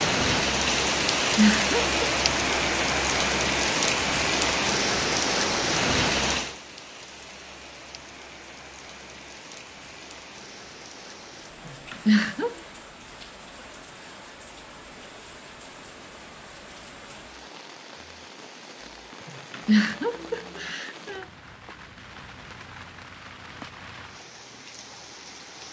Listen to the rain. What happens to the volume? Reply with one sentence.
The volume of the rain goes down.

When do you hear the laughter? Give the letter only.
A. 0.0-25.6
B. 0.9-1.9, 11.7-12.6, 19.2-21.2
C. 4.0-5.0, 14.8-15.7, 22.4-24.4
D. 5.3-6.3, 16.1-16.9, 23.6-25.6
B.